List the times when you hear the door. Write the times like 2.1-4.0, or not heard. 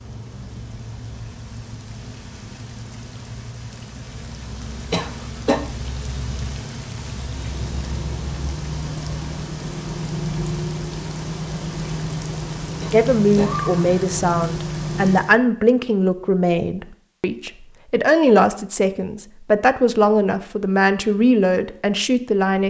not heard.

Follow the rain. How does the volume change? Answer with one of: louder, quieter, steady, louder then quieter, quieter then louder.
louder.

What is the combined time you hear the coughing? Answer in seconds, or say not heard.
2 s.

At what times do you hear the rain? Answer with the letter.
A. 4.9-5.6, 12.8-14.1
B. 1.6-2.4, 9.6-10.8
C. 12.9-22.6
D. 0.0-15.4
D.